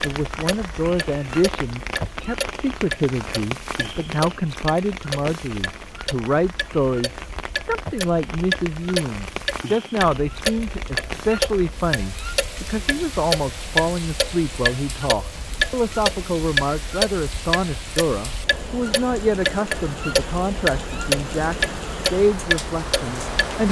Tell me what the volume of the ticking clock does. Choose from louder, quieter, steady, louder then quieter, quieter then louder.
louder.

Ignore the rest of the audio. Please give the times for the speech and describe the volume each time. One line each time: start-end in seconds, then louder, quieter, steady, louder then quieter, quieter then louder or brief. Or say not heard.
0.0-23.6 steady.